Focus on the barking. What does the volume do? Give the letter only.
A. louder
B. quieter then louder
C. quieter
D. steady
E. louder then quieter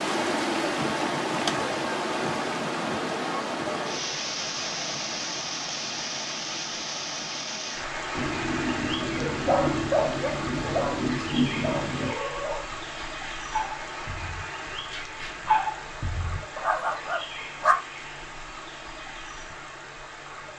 B.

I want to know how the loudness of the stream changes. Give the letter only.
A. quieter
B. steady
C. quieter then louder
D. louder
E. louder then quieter
A.